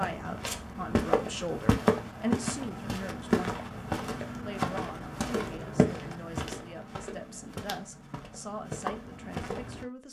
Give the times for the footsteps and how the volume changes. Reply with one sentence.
You can hear the footsteps from 0.0 to 9.8 s, getting quieter.